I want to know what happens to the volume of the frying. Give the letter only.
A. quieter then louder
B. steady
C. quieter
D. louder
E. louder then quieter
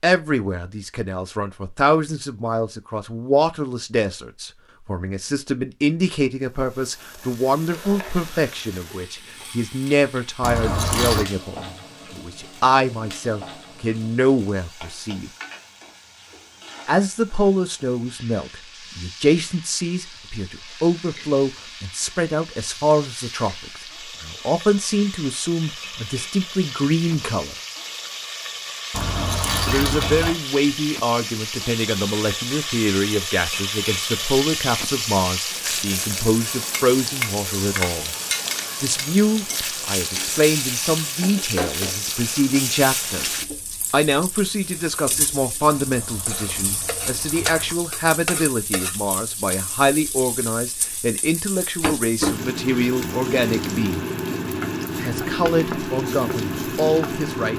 D.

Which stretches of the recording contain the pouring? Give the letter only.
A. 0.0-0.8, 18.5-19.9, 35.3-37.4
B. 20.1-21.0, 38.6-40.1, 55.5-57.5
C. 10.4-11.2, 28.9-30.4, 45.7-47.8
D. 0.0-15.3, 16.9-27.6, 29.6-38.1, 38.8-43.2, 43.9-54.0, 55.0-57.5
C.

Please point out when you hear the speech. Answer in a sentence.
The speech can be heard from 0.0 to 15.3 s, from 16.9 to 27.6 s, from 29.6 to 38.1 s, from 38.8 to 43.2 s, from 43.9 to 54.0 s and from 55.0 to 57.5 s.